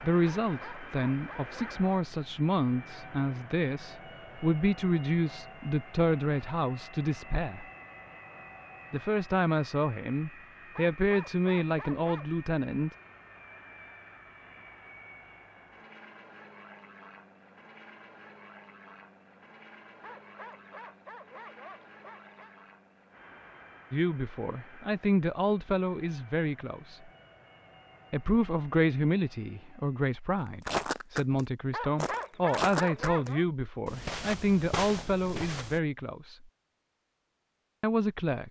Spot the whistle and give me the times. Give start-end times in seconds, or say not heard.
not heard.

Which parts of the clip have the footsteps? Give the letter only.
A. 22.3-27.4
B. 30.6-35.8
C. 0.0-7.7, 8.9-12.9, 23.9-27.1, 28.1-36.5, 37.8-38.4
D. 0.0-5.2
B.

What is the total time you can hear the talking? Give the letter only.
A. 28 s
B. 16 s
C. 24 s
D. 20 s
C.